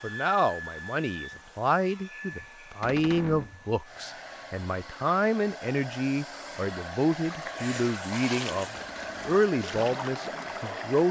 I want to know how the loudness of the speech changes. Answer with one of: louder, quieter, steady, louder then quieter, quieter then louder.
steady.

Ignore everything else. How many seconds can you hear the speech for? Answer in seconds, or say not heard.
11 s.